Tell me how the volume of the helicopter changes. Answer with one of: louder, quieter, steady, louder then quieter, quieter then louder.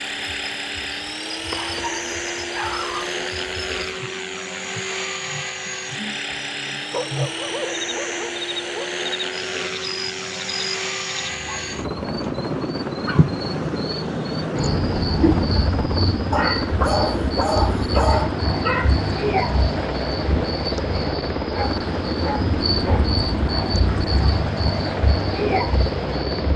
steady.